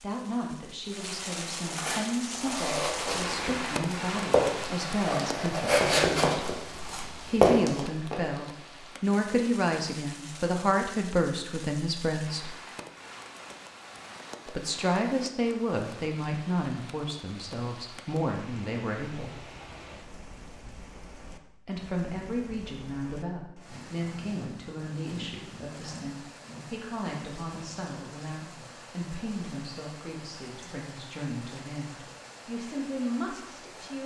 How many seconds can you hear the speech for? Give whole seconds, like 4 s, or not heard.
29 s.